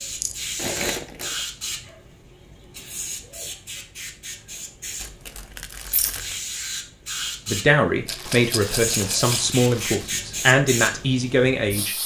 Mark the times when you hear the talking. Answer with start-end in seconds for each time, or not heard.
7.5-12.0.